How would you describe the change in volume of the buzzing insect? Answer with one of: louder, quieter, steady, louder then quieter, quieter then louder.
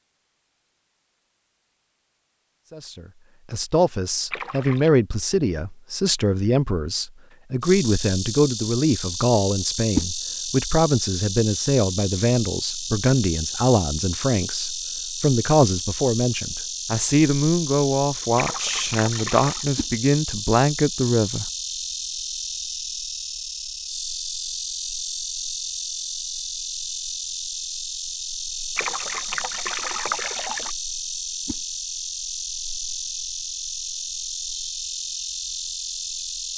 steady.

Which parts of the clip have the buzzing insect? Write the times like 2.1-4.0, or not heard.
7.6-36.5.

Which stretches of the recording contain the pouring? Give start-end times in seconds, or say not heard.
4.3-4.9, 18.4-19.6, 28.8-30.8.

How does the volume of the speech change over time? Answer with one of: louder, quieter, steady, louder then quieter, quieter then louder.
steady.